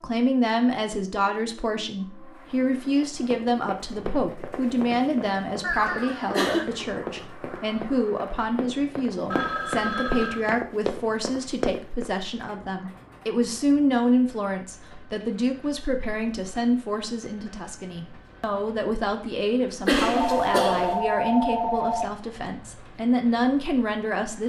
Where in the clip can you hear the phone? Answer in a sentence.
The phone can be heard from 5.6 to 6.4 s, from 9.3 to 10.5 s and from 20.1 to 22.1 s.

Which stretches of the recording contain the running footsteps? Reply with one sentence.
You can hear the running footsteps from 3.0 to 12.2 s.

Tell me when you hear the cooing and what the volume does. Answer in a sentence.
You can't hear the cooing here.